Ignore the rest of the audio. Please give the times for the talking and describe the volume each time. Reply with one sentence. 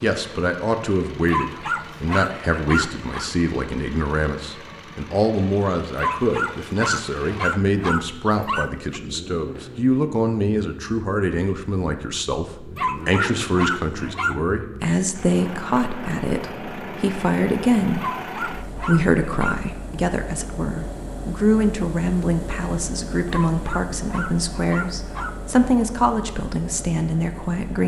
The talking can be heard from 0.0 to 27.8 s, at a steady volume.